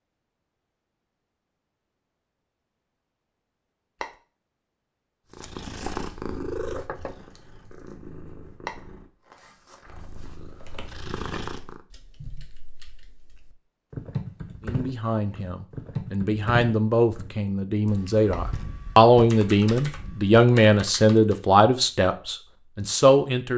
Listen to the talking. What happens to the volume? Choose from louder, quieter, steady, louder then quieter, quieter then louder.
louder.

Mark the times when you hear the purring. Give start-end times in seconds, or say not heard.
5.3-11.8.